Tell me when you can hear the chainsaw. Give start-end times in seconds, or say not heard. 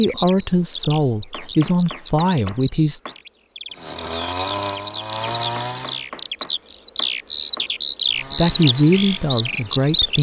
3.7-6.1, 8.1-10.1.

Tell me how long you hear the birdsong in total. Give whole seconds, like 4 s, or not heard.
10 s.